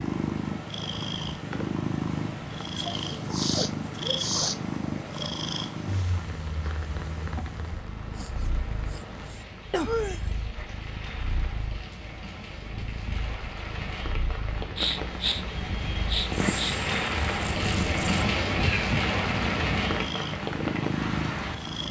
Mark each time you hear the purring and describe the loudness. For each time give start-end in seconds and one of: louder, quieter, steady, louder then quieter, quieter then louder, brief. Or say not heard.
0.0-21.8 quieter then louder.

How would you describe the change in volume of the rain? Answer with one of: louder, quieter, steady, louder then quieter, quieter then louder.
louder.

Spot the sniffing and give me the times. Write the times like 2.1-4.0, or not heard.
2.8-4.8, 8.1-10.3, 14.8-16.8.